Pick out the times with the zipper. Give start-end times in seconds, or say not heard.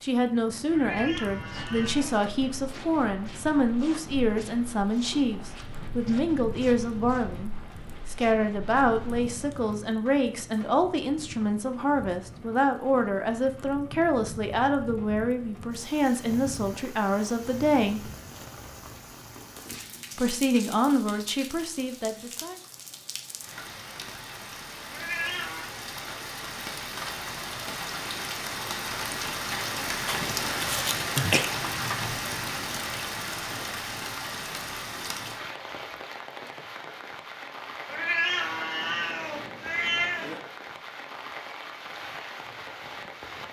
not heard.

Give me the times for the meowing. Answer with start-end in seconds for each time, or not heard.
0.7-2.2, 24.9-25.6, 37.9-40.4.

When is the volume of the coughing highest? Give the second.
31 s.